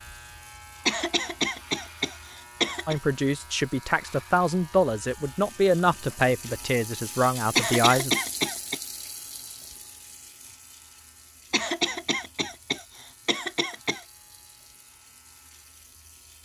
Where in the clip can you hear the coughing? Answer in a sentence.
You can hear the coughing from 0.8 to 3.0 s, from 7.5 to 8.8 s and from 11.5 to 14.1 s.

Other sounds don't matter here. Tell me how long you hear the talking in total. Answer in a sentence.
The talking can be heard for 5 seconds in total.